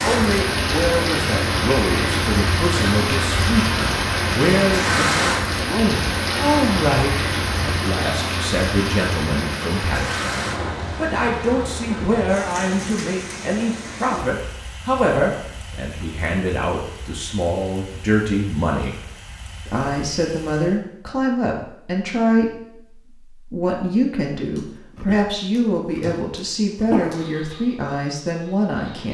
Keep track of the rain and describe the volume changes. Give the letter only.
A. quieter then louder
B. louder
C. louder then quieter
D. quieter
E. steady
D.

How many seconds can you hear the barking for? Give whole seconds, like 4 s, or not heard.
3 s.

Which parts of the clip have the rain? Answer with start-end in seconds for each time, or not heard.
0.0-20.8.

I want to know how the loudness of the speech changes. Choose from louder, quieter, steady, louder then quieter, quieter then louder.
steady.